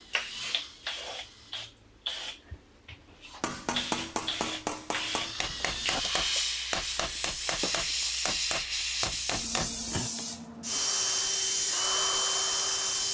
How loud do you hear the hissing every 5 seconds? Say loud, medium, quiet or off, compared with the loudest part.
medium, loud, loud.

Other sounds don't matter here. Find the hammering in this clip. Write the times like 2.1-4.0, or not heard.
3.4-10.2.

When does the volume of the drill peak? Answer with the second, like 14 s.
12 s.